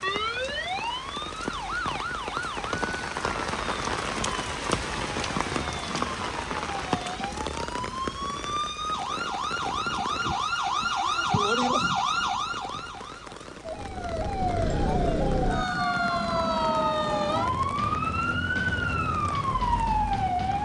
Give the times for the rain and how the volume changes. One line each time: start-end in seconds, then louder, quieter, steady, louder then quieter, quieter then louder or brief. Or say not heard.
0.0-20.5 quieter.